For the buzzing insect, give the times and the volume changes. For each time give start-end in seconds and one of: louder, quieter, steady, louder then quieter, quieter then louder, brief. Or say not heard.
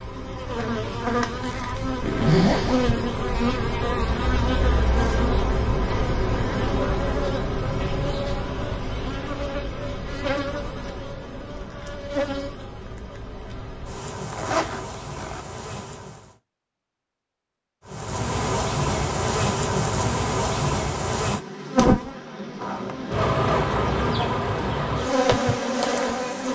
0.0-16.4 quieter
17.9-26.4 steady.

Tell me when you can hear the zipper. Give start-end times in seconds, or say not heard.
2.0-2.8, 14.3-15.4, 22.6-23.7.